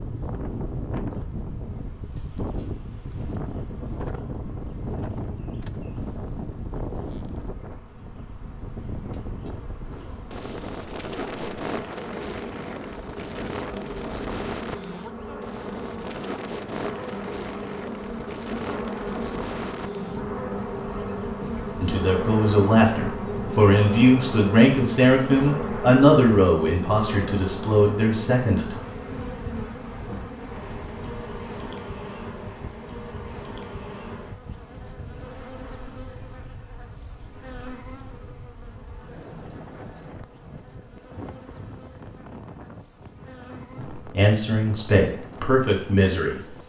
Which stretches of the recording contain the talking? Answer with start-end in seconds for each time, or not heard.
21.8-28.8, 44.0-46.4.